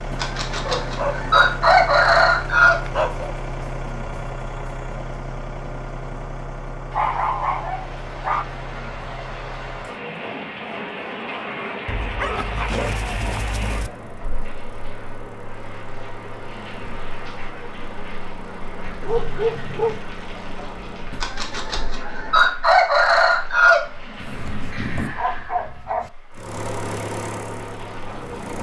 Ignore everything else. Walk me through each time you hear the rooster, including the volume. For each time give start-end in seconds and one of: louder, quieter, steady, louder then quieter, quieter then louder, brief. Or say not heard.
0.1-2.8 brief
21.1-25.1 louder then quieter.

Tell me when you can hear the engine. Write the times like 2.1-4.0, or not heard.
0.0-22.6, 26.3-28.5.